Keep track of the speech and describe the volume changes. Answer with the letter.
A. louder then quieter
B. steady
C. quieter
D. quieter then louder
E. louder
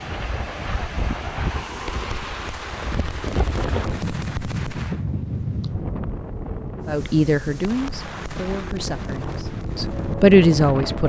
D.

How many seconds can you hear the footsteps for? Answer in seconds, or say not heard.
not heard.